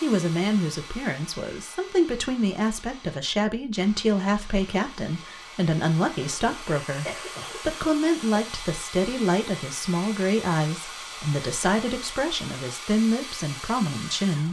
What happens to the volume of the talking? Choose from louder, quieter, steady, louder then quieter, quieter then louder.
steady.